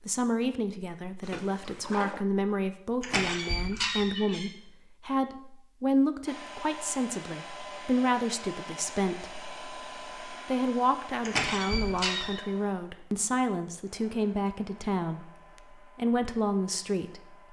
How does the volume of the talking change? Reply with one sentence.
The loudness of the talking stays about the same.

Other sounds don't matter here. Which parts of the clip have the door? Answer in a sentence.
You can hear the door from 3.0 to 4.5 s and from 11.2 to 12.4 s.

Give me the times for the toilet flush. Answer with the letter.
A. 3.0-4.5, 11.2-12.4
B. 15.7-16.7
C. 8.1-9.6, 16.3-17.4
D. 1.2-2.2
D.